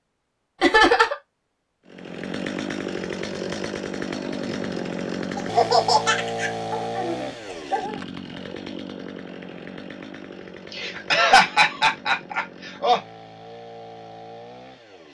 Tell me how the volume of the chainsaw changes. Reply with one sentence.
The volume of the chainsaw goes down.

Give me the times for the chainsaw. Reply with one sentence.
You can hear the chainsaw from 1.9 to 15.0 s.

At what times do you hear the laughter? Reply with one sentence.
The laughter can be heard from 0.6 to 1.1 s, from 5.3 to 8.0 s and from 10.7 to 13.0 s.